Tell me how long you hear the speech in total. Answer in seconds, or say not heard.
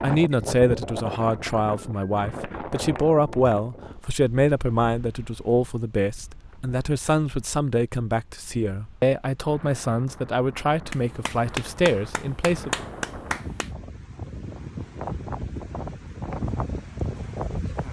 13 s.